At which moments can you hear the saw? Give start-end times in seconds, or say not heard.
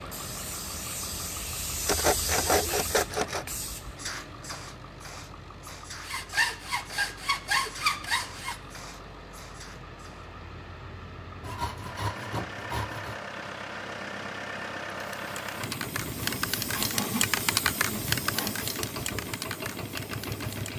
1.9-3.5, 6.0-8.6, 11.4-13.2, 16.0-18.6.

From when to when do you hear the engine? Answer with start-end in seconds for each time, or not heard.
0.0-20.7.